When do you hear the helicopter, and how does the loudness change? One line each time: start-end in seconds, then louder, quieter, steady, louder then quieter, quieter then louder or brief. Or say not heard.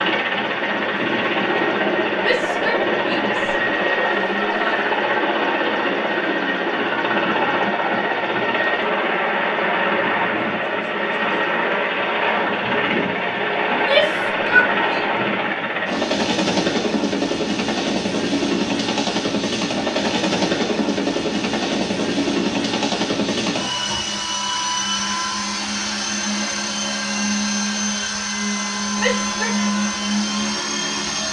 0.0-31.2 steady.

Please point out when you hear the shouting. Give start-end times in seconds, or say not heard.
2.2-4.8, 13.7-15.2, 28.9-29.6.